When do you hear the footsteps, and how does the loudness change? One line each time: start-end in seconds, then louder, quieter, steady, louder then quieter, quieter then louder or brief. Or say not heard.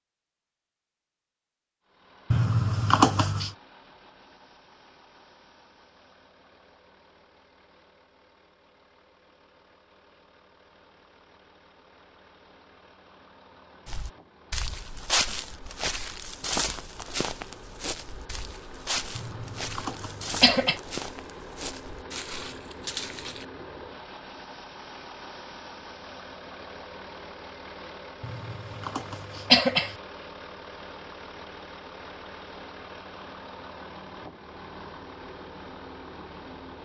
13.8-23.4 quieter.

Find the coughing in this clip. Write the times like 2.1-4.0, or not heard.
2.3-3.5, 19.1-20.8, 28.2-29.9.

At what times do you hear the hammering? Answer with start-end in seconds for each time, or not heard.
not heard.